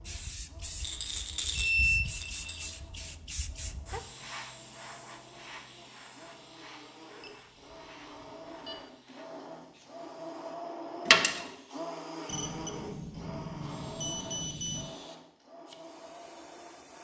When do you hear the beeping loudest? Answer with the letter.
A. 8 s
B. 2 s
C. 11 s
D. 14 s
B.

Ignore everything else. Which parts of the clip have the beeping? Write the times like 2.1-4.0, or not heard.
1.5-2.6, 7.2-8.8, 12.2-14.9.